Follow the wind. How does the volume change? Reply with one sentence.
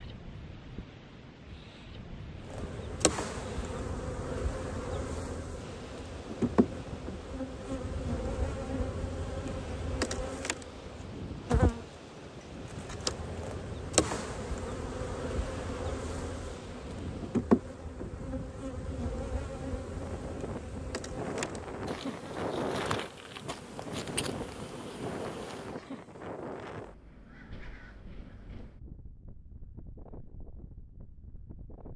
The loudness of the wind goes up, then down.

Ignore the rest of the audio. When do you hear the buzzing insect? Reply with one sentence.
You can hear the buzzing insect from 2.4 to 25.8 s.